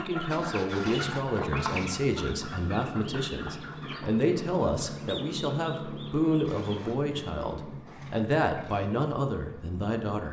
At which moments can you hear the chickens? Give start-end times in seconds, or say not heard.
0.0-7.0.